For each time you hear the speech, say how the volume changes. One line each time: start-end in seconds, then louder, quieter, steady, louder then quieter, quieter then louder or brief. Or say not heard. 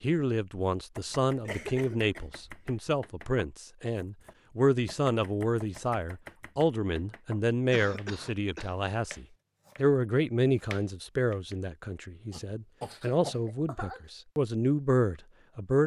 0.0-15.8 steady.